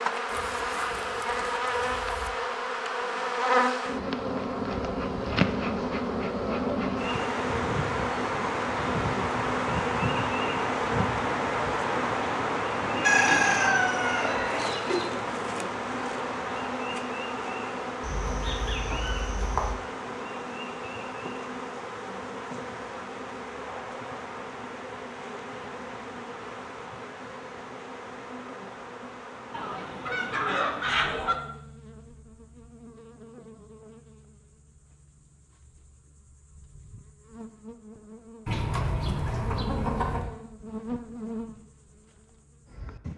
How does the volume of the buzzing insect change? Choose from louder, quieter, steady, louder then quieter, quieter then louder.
quieter.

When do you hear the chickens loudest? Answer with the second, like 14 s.
13 s.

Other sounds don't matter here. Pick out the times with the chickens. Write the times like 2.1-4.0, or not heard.
0.2-2.3, 13.0-15.1, 18.0-19.8, 29.5-31.4, 38.5-40.3.